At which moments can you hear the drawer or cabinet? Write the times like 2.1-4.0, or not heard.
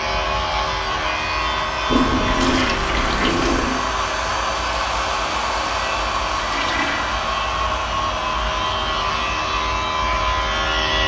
not heard.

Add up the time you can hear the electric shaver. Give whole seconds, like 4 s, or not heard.
11 s.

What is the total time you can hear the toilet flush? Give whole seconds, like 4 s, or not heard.
3 s.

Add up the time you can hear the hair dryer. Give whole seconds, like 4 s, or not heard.
11 s.